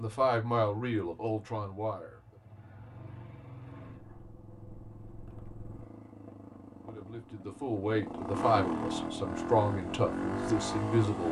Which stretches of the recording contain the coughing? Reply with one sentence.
You can't hear the coughing here.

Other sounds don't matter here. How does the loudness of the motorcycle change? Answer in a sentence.
The volume of the motorcycle goes up.